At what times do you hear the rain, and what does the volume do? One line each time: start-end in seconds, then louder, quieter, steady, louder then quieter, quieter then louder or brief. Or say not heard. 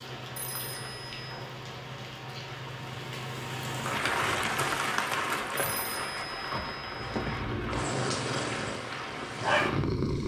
0.0-10.2 louder then quieter.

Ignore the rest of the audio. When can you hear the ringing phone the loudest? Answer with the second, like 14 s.
7 s.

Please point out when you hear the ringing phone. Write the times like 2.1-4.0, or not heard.
0.3-1.4, 5.5-7.5.